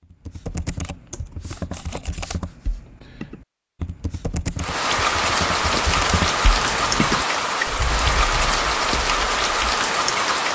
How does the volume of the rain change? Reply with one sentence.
The loudness of the rain stays about the same.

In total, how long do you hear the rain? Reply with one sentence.
You can hear the rain for 6 seconds altogether.